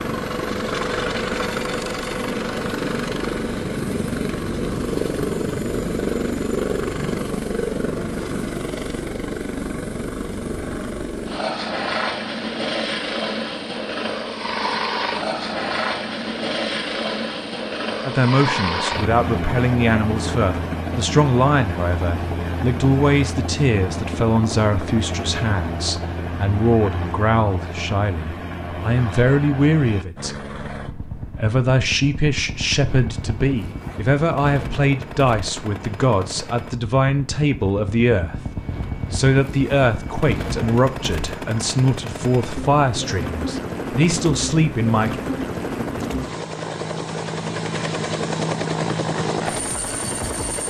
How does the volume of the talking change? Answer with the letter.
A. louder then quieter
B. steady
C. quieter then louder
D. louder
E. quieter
B.